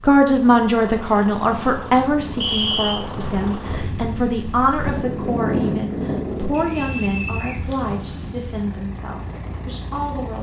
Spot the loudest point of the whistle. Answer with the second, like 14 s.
3 s.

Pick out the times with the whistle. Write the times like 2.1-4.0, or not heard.
2.4-3.0, 6.5-7.6.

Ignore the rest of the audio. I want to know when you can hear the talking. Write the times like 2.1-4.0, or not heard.
0.0-10.3.